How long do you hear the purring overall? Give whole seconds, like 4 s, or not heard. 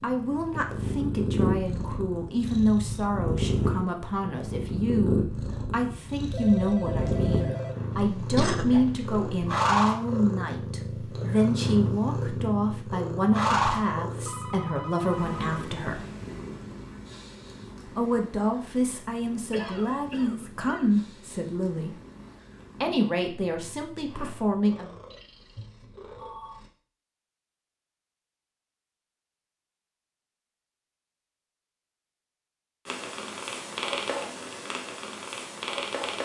30 s.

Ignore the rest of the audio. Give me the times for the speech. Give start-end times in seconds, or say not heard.
0.0-16.0, 17.9-21.9, 22.8-24.9.